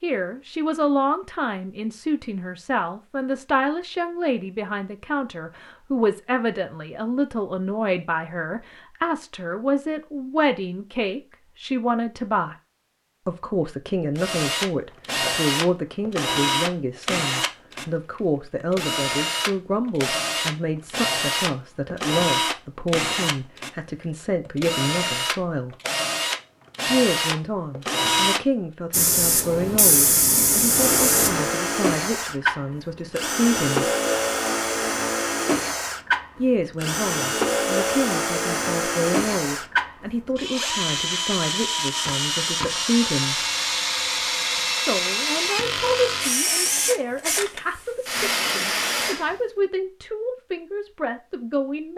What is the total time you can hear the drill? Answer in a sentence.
The drill can be heard for 33 seconds in total.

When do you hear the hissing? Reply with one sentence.
The hissing can be heard from 28.9 to 31.4 s.